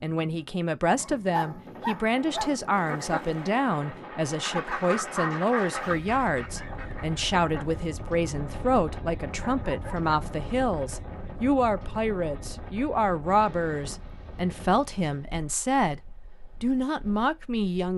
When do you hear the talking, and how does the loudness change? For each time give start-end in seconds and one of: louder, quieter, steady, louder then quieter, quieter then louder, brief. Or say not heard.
0.0-17.9 steady.